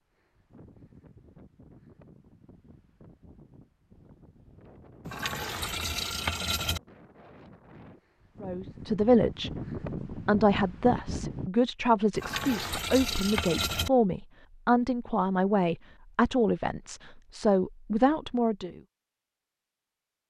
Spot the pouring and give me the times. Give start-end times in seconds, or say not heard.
5.0-6.8, 12.2-13.9.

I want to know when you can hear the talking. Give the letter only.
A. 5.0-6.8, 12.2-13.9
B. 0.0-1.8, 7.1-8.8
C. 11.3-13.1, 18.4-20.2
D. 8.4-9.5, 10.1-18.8
D.